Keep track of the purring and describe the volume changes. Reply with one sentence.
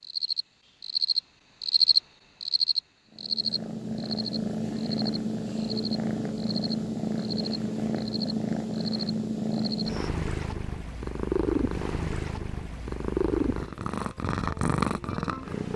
The loudness of the purring stays about the same.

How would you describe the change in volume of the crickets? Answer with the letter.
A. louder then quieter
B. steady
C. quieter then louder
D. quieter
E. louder
D.